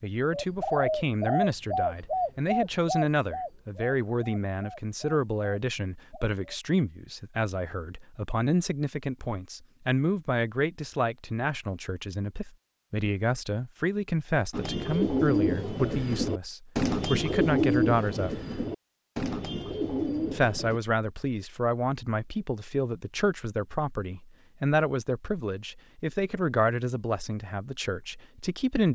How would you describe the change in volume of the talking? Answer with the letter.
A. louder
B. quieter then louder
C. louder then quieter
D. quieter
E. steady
E.